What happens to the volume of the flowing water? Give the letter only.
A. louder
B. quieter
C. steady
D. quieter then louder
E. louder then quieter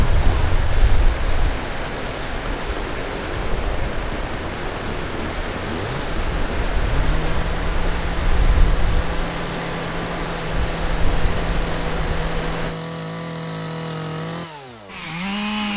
C.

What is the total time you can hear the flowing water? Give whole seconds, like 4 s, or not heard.
13 s.